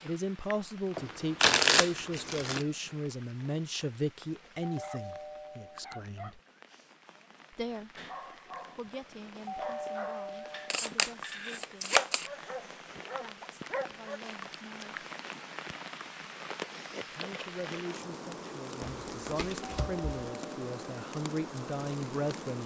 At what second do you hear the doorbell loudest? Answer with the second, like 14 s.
10 s.